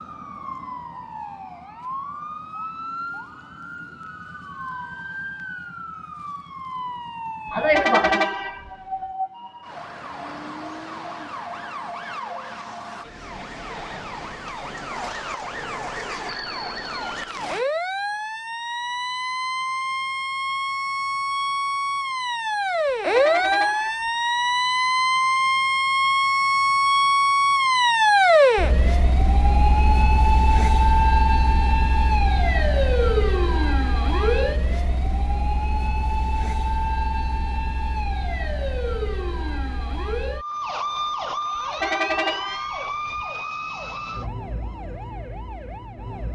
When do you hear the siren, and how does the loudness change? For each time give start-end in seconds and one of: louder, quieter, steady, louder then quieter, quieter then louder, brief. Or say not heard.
0.0-46.3 louder then quieter.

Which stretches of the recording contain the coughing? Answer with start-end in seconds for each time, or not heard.
7.5-8.3.